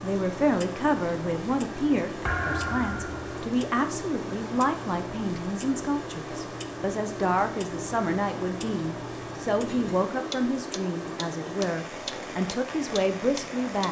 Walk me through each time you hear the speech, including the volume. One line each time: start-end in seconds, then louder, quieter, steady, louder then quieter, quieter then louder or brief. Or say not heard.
0.0-13.8 steady.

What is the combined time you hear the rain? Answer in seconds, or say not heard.
14 s.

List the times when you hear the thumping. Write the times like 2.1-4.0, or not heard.
2.2-3.2, 9.7-10.1.